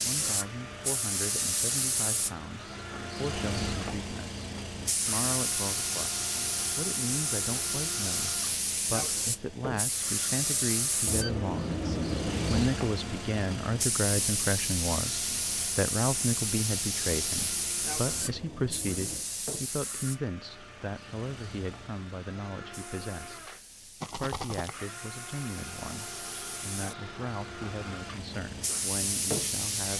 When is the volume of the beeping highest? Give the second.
12 s.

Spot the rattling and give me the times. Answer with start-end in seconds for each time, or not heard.
24.0-24.8.